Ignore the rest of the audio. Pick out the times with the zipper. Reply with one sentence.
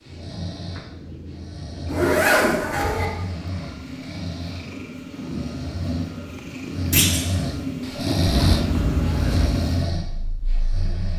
You can hear the zipper from 1.9 to 3.0 s and from 8.2 to 9.4 s.